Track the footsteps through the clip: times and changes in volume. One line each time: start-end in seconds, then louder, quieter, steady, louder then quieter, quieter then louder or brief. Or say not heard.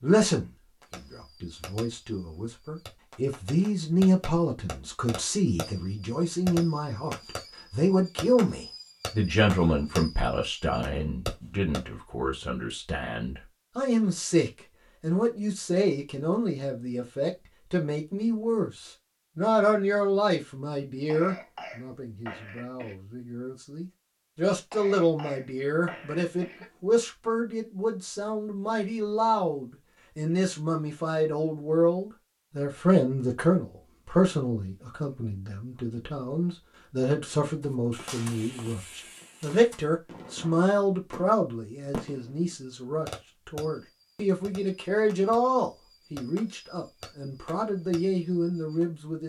not heard.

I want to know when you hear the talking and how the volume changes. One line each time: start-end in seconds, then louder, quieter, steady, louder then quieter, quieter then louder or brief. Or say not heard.
0.0-49.2 steady.